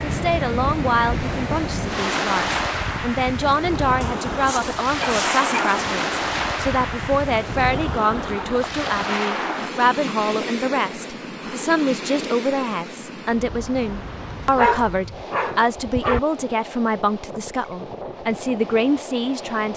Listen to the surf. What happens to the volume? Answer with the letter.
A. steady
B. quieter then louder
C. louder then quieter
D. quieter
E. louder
D.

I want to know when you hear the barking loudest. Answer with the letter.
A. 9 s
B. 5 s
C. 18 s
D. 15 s
D.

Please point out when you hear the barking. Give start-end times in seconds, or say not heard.
4.0-5.8, 14.6-16.2.